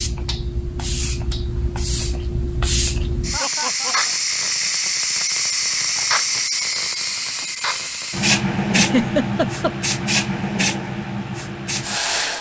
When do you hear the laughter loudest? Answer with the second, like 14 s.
9 s.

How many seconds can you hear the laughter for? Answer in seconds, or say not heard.
2 s.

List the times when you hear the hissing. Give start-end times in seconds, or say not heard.
0.0-12.3.